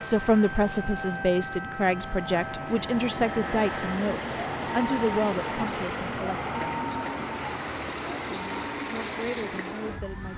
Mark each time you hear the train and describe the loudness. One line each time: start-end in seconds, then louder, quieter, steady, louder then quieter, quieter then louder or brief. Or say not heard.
0.0-10.3 louder.